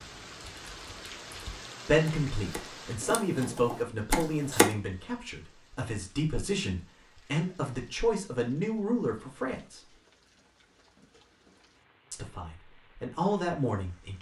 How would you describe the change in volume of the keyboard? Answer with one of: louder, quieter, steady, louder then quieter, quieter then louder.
louder.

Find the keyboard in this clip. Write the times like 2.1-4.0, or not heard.
0.0-4.7.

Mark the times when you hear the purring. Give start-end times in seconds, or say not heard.
not heard.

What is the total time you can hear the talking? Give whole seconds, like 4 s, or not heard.
10 s.